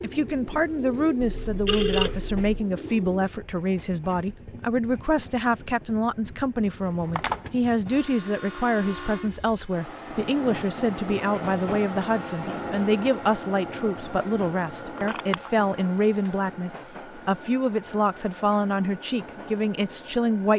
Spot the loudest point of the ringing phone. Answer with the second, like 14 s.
2 s.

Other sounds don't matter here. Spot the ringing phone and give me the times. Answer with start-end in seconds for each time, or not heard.
1.2-2.5, 7.0-7.5, 14.9-15.7.